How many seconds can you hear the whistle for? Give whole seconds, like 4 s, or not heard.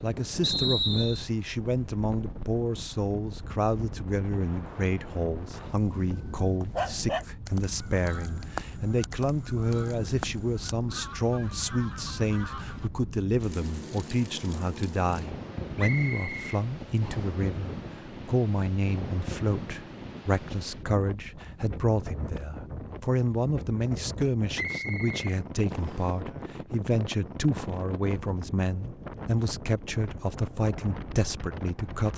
4 s.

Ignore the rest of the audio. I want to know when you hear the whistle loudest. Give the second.
1 s.